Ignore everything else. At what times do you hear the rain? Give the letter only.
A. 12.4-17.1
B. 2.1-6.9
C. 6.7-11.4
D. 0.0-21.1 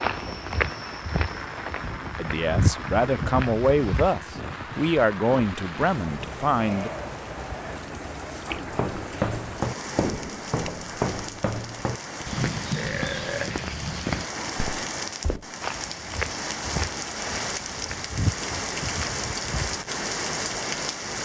D.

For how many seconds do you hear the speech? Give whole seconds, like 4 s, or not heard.
5 s.